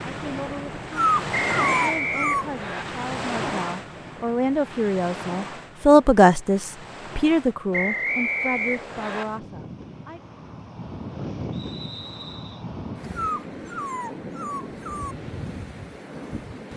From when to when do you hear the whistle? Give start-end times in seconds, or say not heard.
1.3-2.9, 7.7-9.2, 11.5-12.7.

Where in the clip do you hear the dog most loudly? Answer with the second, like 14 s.
1 s.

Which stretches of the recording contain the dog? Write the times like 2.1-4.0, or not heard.
0.9-2.5, 13.2-15.2.